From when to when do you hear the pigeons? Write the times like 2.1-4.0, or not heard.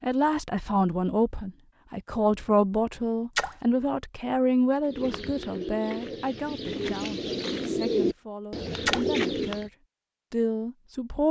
4.8-9.7.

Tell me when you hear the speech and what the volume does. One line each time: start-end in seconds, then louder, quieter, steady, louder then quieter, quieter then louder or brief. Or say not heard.
0.0-9.7 quieter
10.3-11.2 brief.